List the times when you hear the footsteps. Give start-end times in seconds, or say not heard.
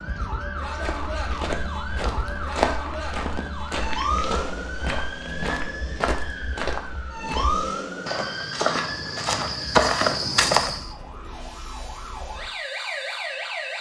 0.7-10.9.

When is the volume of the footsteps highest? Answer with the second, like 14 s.
10 s.